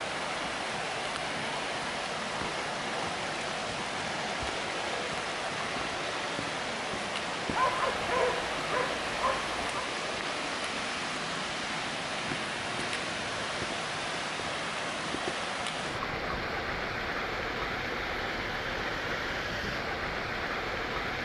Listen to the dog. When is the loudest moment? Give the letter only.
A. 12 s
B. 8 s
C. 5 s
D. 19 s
B.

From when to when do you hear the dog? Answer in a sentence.
The dog can be heard from 7.5 to 9.9 s.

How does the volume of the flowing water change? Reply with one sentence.
The volume of the flowing water stays about the same.